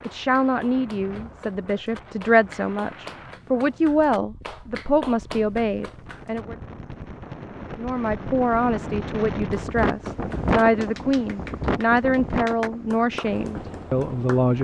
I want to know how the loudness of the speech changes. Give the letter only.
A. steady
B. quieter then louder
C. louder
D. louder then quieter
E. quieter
A.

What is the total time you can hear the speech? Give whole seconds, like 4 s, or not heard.
13 s.